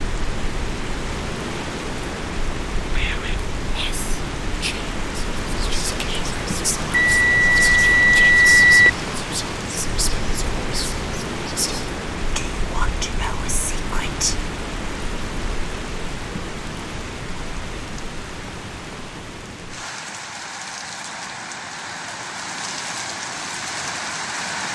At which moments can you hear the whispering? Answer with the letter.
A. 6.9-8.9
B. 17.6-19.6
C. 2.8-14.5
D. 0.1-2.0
C.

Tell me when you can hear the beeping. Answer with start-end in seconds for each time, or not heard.
6.9-8.9.